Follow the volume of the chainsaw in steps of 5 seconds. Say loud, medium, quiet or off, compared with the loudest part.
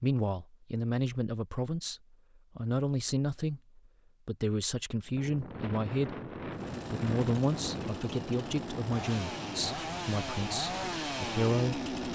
off, medium, loud.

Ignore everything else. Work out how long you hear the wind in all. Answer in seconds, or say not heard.
7 s.